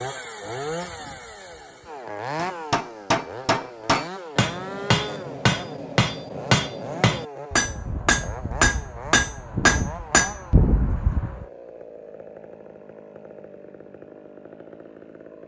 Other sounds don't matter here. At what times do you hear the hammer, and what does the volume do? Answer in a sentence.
You can hear the hammer from 2.4 to 11.4 s, at a steady volume.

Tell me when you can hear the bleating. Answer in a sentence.
You can't hear the bleating here.